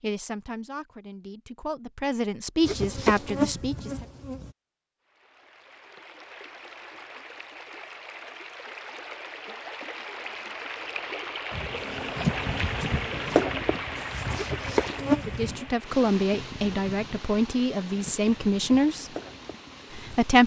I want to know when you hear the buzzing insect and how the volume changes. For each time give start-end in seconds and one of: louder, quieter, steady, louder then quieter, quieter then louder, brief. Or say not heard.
2.6-4.5 brief
11.5-20.4 quieter.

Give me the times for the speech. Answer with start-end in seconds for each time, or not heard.
0.0-4.0, 15.2-19.1, 19.9-20.4.